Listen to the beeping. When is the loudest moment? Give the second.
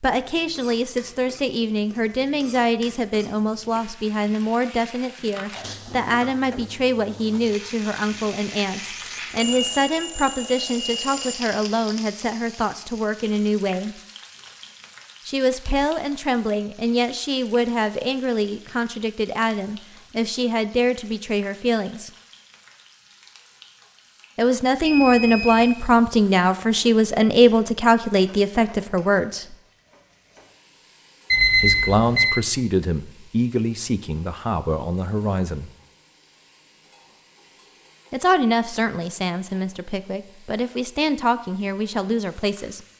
32 s.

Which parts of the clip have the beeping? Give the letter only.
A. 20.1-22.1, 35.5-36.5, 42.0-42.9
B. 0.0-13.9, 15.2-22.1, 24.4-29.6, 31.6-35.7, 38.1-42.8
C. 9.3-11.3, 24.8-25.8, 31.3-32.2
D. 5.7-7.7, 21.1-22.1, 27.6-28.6
C.